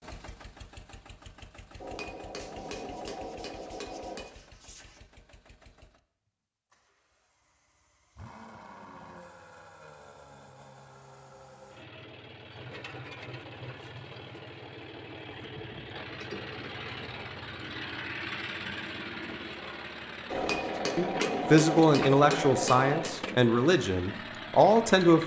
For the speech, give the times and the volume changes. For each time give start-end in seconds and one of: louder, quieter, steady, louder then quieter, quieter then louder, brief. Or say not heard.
20.9-25.2 quieter then louder.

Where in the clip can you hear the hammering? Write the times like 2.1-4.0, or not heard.
1.8-4.3, 20.3-23.1.